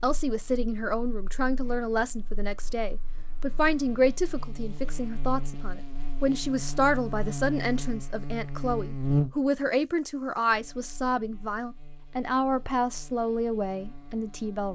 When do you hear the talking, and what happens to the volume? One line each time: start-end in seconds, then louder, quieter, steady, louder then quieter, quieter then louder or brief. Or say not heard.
0.0-14.7 steady.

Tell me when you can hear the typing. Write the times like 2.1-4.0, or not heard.
not heard.